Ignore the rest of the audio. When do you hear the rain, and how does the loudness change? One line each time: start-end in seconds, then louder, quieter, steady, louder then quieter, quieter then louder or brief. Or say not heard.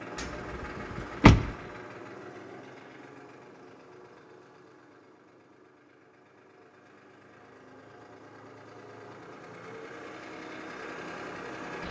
not heard.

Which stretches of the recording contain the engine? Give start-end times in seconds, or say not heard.
0.0-11.8.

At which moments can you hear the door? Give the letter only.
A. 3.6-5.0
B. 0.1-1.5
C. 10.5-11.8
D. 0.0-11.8
B.